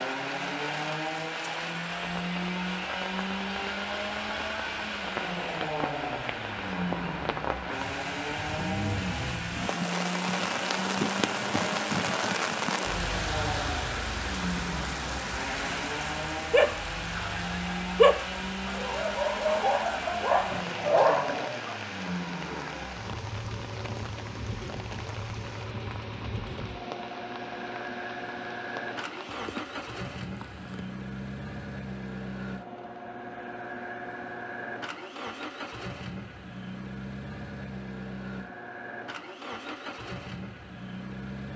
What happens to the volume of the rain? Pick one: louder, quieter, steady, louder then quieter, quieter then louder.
louder then quieter.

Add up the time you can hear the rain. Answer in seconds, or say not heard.
31 s.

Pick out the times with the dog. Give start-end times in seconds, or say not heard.
16.5-21.8.